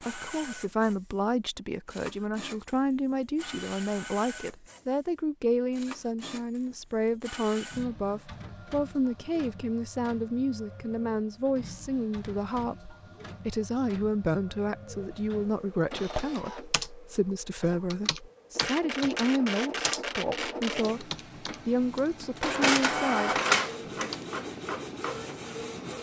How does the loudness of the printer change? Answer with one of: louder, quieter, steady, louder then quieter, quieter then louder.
louder.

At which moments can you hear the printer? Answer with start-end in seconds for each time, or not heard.
0.0-25.9.